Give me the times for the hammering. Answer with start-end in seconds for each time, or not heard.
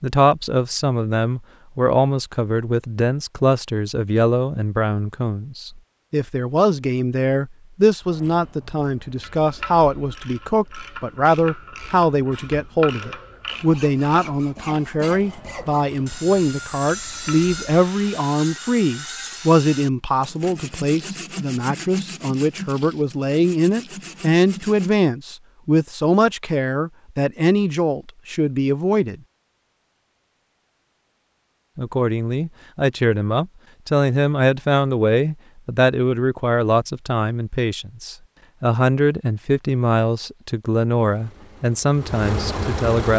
not heard.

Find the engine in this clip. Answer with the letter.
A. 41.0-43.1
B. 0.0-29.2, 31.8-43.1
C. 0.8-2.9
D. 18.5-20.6
A.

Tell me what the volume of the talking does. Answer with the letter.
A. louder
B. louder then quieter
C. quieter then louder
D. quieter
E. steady
E.